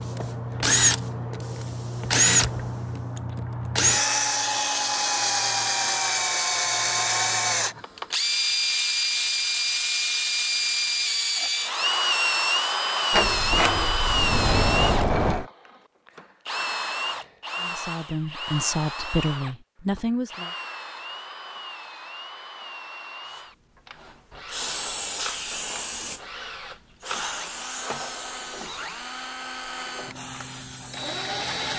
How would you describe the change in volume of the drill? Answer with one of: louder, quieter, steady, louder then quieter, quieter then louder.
quieter.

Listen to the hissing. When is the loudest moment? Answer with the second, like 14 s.
25 s.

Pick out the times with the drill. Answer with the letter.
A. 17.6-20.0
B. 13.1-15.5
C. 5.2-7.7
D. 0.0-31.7
D.